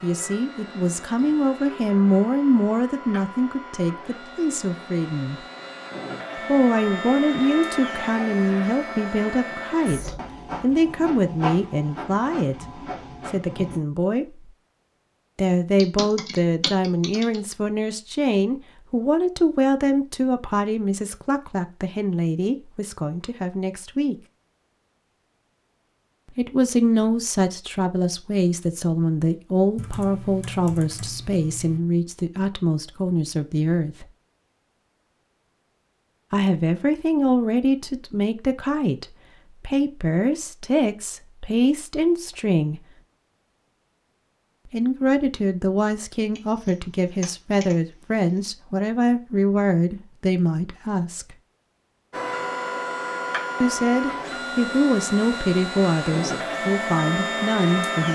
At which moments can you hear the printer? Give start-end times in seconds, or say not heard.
0.0-13.8, 52.1-58.0.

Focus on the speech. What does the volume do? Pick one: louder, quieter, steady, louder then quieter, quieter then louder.
steady.